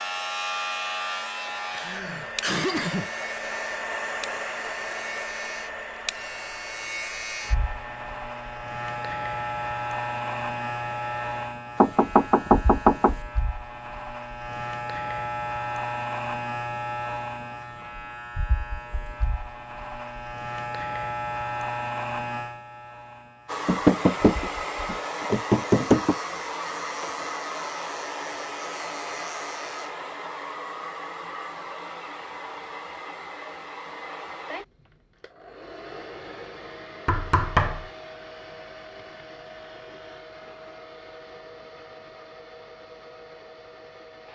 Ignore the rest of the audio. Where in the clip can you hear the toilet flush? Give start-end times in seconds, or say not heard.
not heard.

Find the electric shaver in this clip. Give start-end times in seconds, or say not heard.
0.0-29.9.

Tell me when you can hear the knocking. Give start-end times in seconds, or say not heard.
11.8-13.2, 23.6-26.1, 37.0-37.9.